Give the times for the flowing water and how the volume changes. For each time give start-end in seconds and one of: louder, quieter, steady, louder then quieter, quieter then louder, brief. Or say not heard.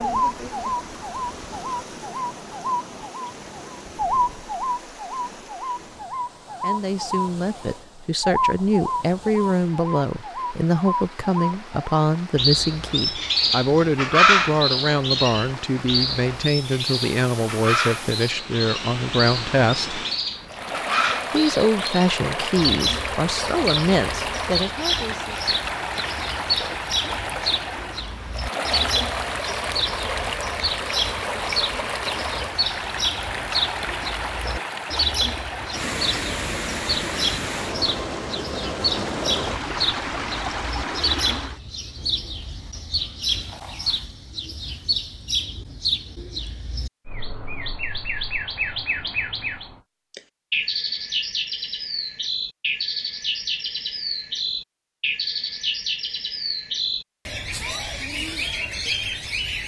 0.0-41.6 louder.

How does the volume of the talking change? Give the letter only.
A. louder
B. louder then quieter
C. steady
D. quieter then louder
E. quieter
C.